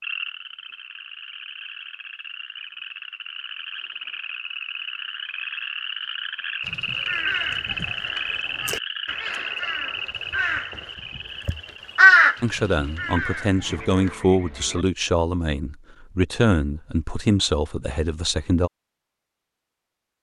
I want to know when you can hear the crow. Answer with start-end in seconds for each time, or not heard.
6.7-10.8, 11.4-14.1.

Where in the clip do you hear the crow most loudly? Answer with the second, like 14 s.
12 s.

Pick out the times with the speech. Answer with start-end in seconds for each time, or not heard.
12.4-18.7.